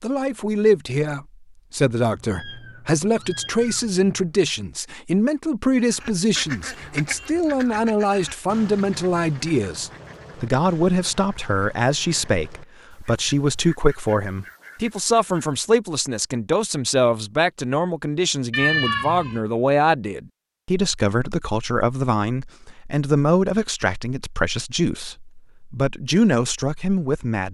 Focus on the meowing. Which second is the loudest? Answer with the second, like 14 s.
19 s.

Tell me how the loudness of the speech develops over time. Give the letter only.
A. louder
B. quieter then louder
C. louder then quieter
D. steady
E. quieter
D.